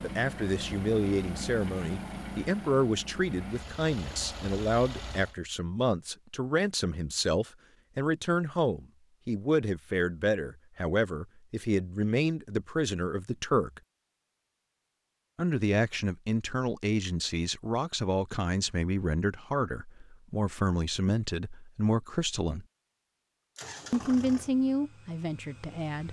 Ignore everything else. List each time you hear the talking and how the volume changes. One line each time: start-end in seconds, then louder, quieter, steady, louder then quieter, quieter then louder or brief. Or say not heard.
0.0-13.8 steady
15.3-22.6 steady
23.9-26.0 brief.